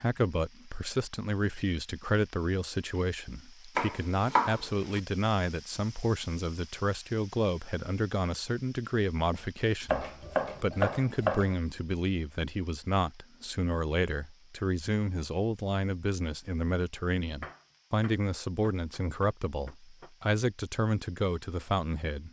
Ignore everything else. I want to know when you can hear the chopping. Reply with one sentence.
You can hear the chopping from 3.8 to 5.0 s, from 9.9 to 11.6 s and from 17.4 to 20.1 s.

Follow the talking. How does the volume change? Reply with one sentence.
The loudness of the talking stays about the same.